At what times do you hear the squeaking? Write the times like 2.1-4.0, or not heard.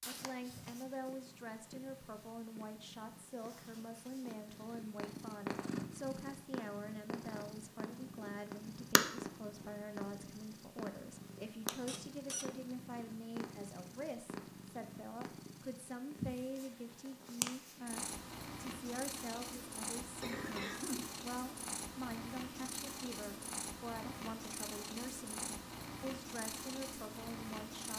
11.8-12.5.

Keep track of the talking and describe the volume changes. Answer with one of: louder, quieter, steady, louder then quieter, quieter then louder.
steady.